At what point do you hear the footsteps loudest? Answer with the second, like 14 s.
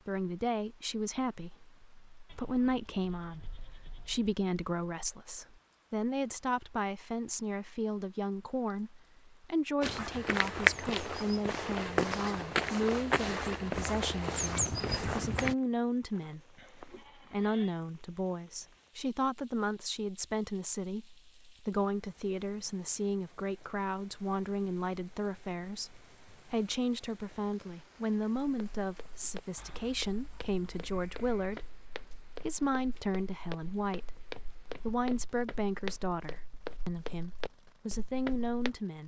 11 s.